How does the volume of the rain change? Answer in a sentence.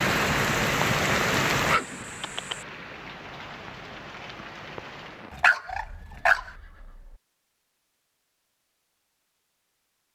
The volume of the rain goes down.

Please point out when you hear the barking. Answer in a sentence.
The barking can be heard from 1.6 to 2.6 s and from 5.3 to 6.5 s.